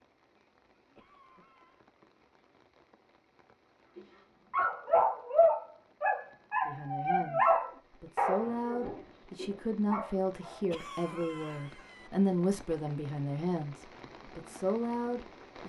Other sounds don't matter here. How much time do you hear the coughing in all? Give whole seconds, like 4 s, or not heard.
2 s.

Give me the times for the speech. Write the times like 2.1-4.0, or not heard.
6.7-15.6.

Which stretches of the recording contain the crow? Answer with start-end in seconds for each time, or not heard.
not heard.